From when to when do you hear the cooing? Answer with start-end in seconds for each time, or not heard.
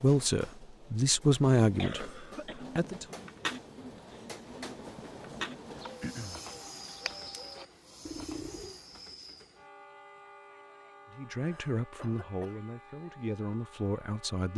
2.5-8.8.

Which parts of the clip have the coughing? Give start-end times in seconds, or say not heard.
1.8-2.6, 6.0-6.4, 11.3-12.6.